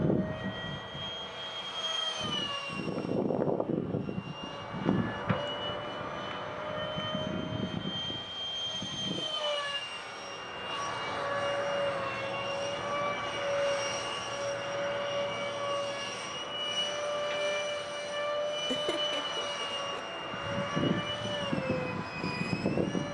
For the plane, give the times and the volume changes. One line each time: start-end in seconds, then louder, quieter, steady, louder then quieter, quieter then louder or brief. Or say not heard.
0.0-23.0 steady.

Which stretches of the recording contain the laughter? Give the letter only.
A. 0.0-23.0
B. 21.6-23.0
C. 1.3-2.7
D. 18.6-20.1
D.